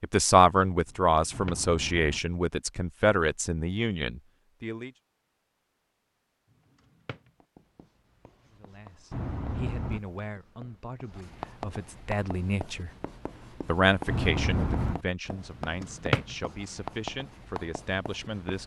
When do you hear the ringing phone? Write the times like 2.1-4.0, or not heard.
1.3-2.2, 9.1-10.2, 14.1-14.9.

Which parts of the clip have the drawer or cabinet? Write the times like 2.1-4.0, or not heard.
0.8-1.6, 6.8-7.3, 15.8-16.4.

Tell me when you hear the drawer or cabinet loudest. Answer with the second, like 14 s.
16 s.